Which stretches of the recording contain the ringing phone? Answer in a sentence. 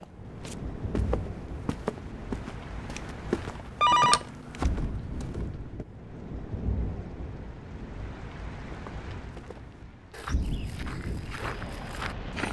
The ringing phone can be heard from 3.8 to 4.7 s.